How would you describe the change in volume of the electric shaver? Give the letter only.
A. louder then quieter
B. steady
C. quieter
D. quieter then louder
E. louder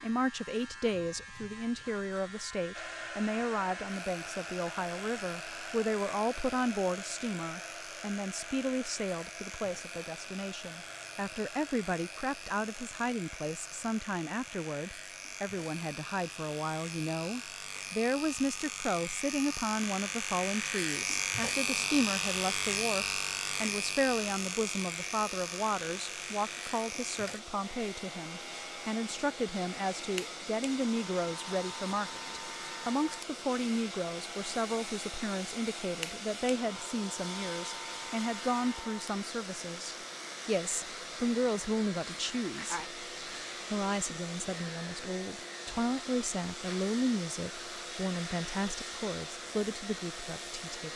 A.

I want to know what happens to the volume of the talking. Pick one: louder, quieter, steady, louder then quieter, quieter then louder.
steady.